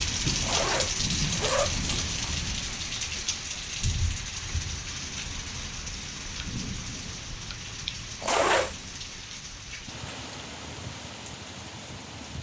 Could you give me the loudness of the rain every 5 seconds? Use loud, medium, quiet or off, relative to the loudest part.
loud, medium, medium.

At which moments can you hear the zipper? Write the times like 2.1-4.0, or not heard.
0.4-2.1, 8.2-8.8.